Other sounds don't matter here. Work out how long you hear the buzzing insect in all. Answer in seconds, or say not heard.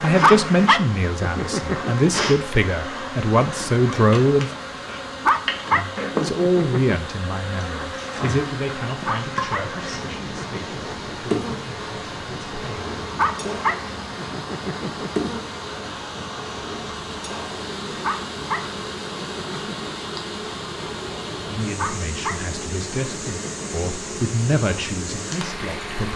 26 s.